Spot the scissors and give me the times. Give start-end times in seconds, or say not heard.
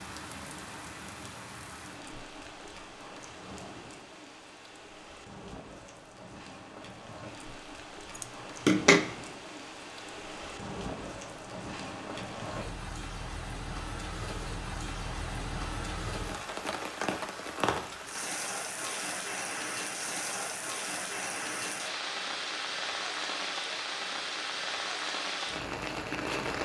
8.2-9.1.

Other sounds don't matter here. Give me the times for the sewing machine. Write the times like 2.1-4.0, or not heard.
not heard.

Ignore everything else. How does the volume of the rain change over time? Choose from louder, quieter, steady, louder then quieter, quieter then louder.
louder.